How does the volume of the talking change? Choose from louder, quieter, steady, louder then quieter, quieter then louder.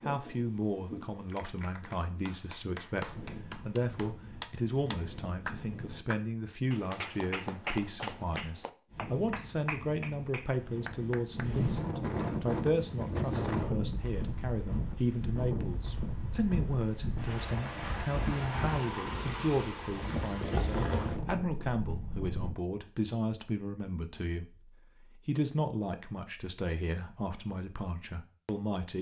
steady.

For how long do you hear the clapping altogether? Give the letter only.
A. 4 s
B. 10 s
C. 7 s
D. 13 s
B.